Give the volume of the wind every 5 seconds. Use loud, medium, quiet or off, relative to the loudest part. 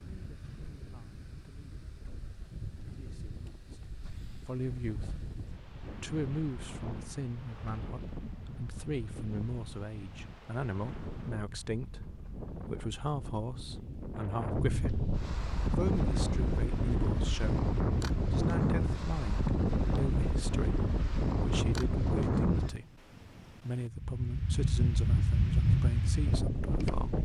quiet, quiet, medium, loud, loud, loud.